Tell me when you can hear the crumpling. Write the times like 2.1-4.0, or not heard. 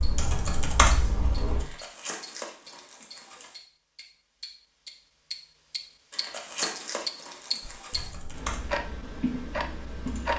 1.6-3.6, 6.1-8.1.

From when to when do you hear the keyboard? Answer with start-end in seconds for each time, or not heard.
0.0-1.6, 7.6-10.3.